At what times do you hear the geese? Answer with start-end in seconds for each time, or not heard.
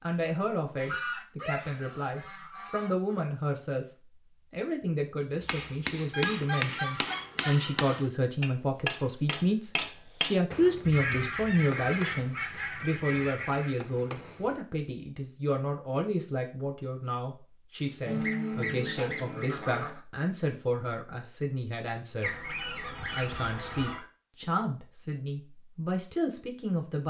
0.8-3.1, 6.1-7.8, 10.8-13.8, 18.1-20.0, 22.2-24.0.